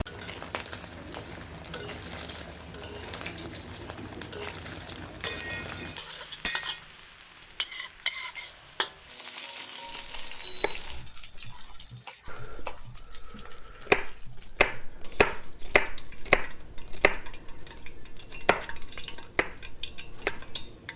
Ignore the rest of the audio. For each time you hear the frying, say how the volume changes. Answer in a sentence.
The frying can be heard from 0.0 to 20.9 s, getting quieter.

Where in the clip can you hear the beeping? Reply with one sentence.
The beeping can be heard from 10.4 to 10.8 s.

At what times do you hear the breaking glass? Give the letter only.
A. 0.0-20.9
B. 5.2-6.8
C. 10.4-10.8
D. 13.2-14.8
B.